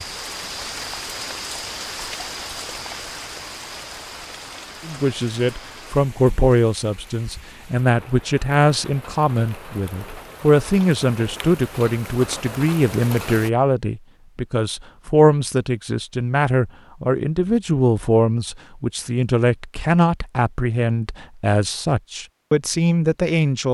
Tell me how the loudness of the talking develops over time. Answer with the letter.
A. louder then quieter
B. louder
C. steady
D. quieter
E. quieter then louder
C.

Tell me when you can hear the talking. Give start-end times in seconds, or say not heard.
4.8-23.6.